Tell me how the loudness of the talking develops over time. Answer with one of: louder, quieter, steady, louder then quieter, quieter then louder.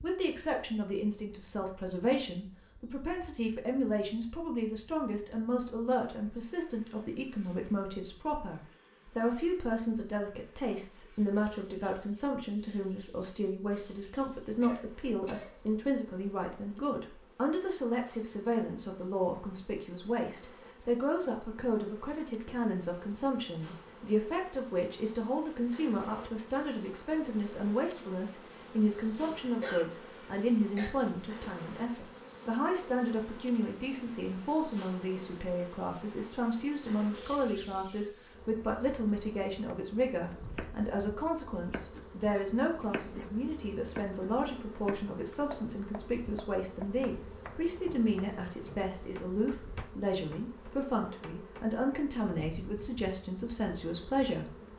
steady.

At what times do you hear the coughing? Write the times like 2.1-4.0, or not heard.
14.6-15.5, 29.4-30.9.